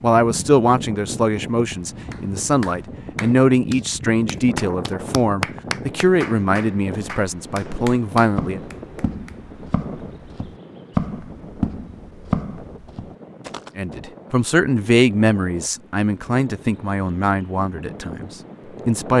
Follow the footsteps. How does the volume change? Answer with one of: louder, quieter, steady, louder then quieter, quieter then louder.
louder then quieter.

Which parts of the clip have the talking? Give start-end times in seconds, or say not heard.
0.0-8.6, 13.8-19.1.